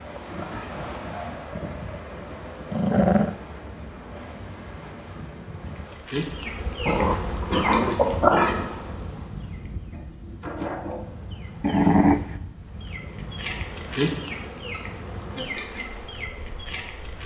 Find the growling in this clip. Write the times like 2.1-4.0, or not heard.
2.7-3.4, 6.8-8.7, 11.6-12.4.